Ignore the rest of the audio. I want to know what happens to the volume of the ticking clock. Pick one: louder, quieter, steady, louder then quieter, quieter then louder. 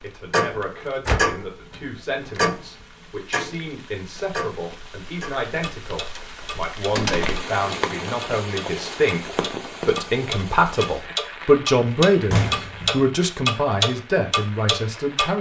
quieter then louder.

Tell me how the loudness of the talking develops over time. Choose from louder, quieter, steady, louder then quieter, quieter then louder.
louder.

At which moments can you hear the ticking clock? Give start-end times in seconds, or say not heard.
0.2-15.3.